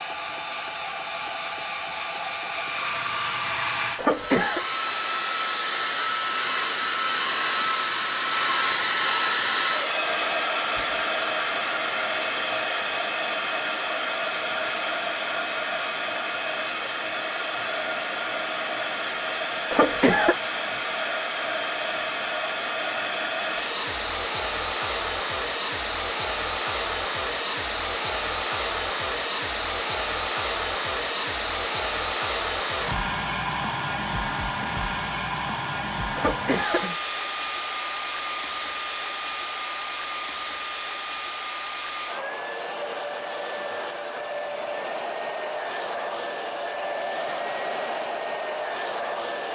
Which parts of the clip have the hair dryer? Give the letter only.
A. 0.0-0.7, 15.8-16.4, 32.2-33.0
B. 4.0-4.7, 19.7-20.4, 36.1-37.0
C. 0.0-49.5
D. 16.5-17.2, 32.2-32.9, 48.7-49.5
C.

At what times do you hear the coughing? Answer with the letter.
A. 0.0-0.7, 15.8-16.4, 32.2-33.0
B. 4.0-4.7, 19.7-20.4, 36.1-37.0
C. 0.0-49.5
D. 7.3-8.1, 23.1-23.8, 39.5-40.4
B.